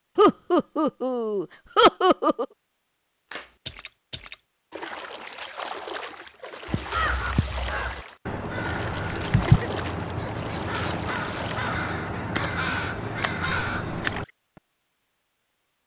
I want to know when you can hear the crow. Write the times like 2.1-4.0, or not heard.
6.7-14.2.